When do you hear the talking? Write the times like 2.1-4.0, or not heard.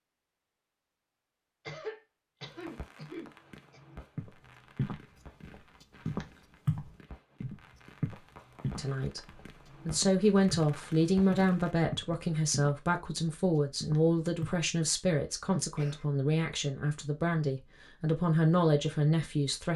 8.8-19.7.